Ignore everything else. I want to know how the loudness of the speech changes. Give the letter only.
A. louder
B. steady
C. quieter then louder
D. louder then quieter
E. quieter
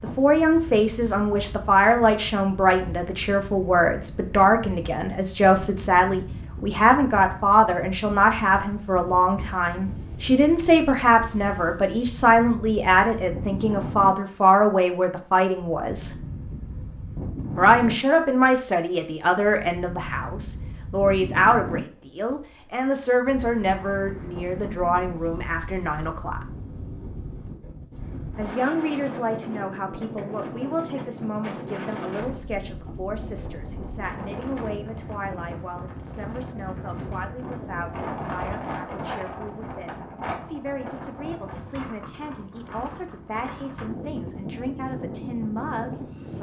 E.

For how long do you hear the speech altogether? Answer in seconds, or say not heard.
43 s.